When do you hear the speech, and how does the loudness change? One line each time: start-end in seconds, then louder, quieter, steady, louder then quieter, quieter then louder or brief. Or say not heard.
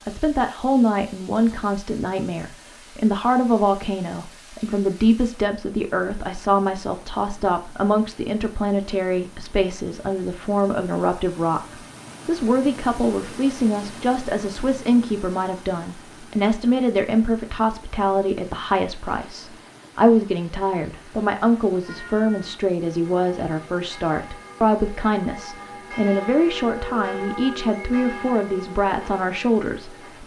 0.1-30.2 steady.